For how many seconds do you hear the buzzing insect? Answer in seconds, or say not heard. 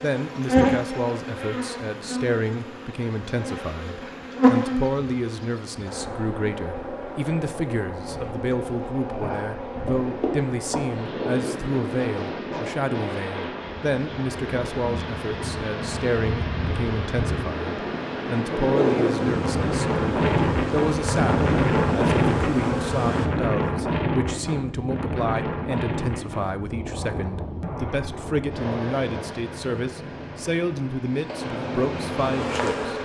25 s.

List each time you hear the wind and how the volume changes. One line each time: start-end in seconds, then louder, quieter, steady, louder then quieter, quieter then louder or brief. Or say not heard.
9.7-33.0 louder then quieter.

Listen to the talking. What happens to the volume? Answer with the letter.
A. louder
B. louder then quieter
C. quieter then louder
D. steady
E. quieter
D.